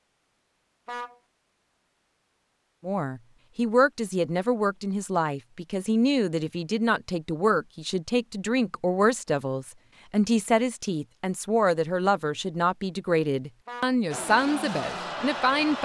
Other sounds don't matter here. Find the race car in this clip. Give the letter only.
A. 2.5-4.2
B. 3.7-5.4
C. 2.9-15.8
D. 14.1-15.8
D.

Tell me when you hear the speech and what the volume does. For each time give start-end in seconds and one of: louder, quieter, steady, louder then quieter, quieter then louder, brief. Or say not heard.
2.9-15.8 steady.